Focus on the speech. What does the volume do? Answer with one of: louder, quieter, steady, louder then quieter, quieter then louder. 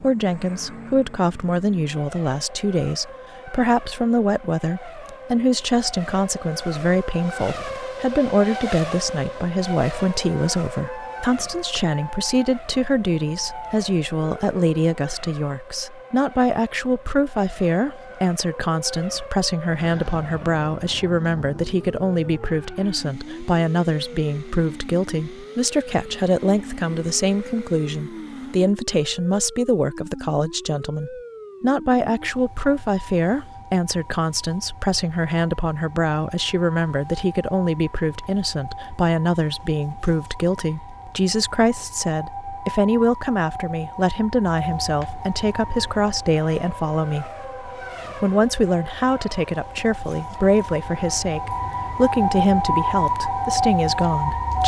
steady.